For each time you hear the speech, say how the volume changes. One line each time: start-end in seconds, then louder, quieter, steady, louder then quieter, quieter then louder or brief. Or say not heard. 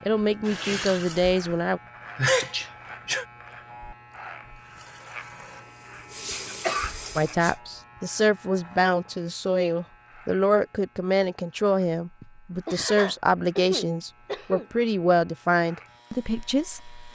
0.1-1.8 brief
7.2-17.1 steady.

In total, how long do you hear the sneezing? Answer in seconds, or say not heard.
5 s.